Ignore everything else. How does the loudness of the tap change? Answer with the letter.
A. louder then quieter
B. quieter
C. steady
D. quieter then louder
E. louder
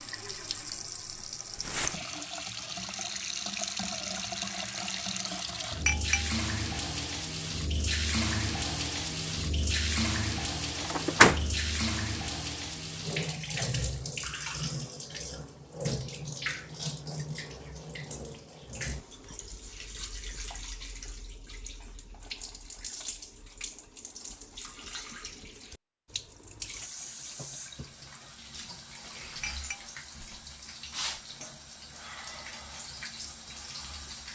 B.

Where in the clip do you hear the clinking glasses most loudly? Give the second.
6 s.